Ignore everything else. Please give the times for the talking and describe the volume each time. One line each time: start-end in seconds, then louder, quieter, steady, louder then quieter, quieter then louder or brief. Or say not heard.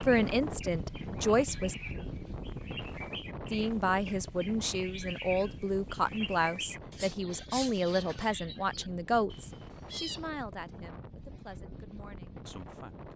0.0-1.8 brief
3.5-13.1 quieter.